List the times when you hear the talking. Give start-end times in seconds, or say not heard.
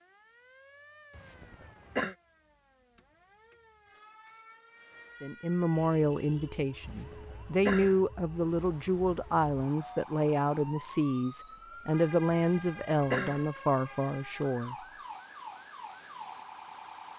5.2-14.8.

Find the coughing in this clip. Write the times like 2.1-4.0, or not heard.
1.1-2.1, 6.8-8.0, 12.6-13.4.